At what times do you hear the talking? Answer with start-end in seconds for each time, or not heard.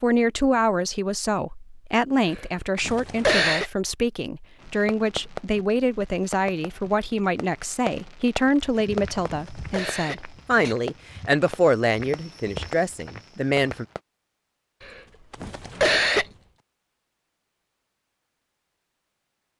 0.0-13.8.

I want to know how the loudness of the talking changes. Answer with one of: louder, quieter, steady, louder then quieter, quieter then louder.
steady.